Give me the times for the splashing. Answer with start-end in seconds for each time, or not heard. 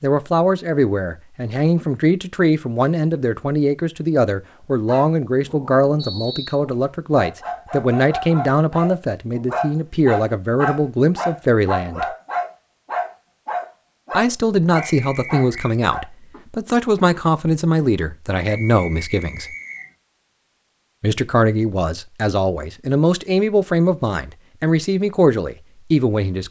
not heard.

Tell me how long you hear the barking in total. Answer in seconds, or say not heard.
12 s.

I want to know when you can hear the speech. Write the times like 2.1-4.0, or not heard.
0.0-12.1, 14.1-19.6, 21.0-26.4.